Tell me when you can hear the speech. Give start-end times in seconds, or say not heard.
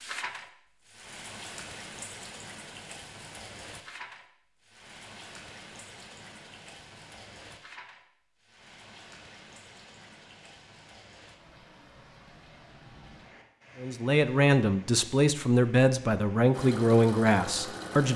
13.8-18.1.